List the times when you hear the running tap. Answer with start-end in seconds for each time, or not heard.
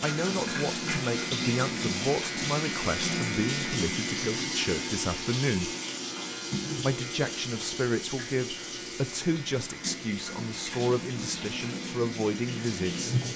0.0-13.3.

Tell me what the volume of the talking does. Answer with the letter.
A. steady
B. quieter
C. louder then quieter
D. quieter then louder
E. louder
A.